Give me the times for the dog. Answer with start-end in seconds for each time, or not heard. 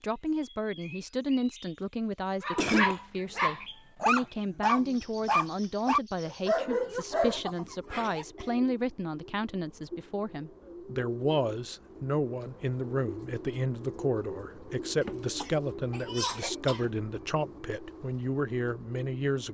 2.4-8.6.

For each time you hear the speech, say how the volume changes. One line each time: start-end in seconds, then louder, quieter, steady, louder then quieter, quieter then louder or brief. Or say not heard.
0.0-19.4 steady.